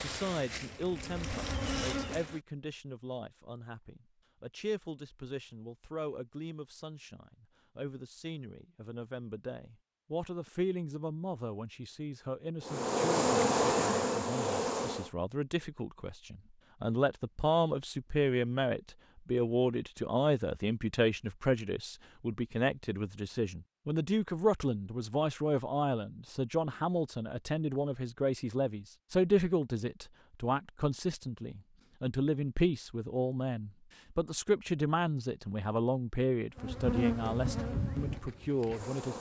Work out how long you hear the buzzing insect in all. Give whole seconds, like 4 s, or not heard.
7 s.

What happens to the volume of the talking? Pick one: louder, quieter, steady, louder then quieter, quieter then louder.
louder.